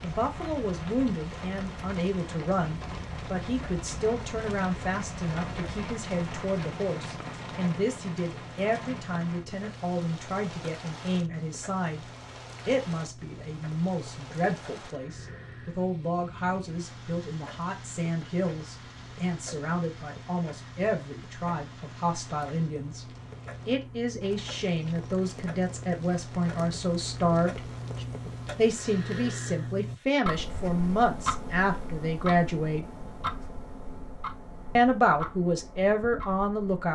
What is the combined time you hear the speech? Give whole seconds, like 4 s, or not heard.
33 s.